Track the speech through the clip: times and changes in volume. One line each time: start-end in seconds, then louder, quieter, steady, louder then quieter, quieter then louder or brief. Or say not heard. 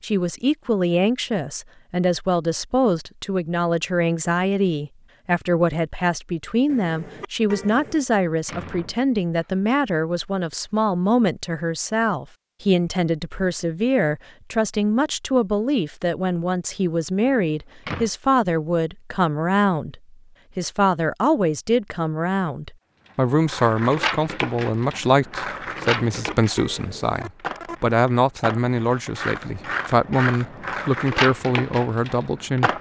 0.0-32.7 steady.